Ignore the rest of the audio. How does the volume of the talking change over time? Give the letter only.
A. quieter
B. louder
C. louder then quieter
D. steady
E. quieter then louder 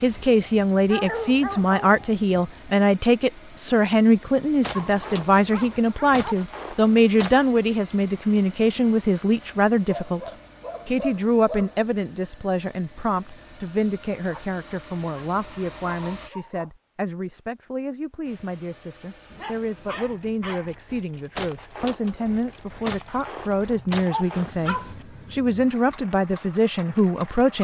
E.